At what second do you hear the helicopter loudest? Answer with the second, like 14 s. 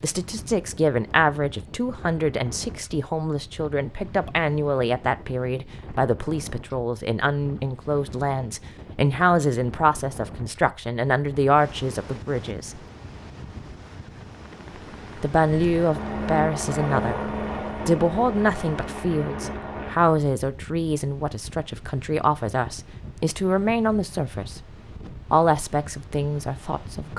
17 s.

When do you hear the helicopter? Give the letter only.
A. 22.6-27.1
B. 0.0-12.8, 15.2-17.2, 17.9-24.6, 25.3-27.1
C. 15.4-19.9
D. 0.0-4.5
C.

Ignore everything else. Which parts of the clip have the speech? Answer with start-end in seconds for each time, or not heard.
0.0-12.8, 15.2-17.2, 17.9-24.6, 25.3-27.1.